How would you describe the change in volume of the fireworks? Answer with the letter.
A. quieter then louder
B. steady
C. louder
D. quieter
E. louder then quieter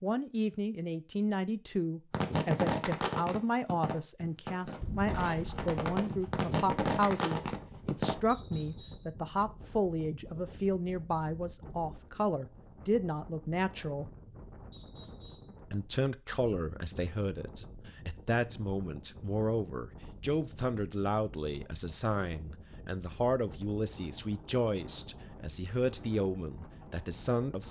A.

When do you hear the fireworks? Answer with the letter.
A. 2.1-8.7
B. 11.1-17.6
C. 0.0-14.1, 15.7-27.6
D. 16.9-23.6
A.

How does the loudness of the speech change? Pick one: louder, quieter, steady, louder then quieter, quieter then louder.
steady.